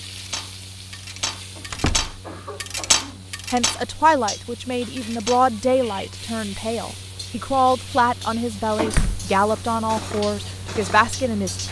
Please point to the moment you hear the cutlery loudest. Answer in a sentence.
The loudest moment of the cutlery is at 3 seconds.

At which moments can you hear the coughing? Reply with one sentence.
The coughing can be heard from 1.6 to 3.3 s and from 8.8 to 9.2 s.